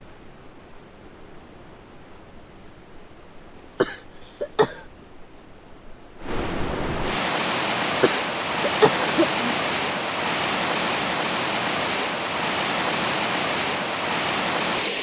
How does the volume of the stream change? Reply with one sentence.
The volume of the stream goes up.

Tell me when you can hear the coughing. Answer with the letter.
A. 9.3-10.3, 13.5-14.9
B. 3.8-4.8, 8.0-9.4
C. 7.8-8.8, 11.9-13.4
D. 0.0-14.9
B.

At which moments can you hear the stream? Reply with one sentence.
The stream can be heard from 0.0 to 14.9 s.